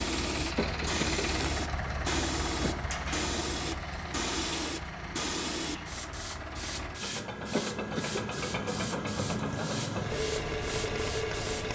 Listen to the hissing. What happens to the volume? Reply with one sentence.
The loudness of the hissing goes down.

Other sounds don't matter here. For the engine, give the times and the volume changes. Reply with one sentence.
The engine can be heard from 0.0 to 11.7 s, getting quieter then louder.